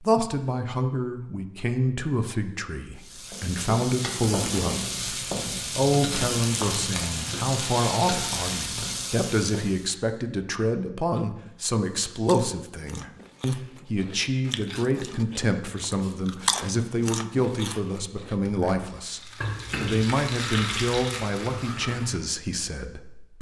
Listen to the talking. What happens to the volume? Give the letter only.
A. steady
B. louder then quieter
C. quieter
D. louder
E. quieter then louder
A.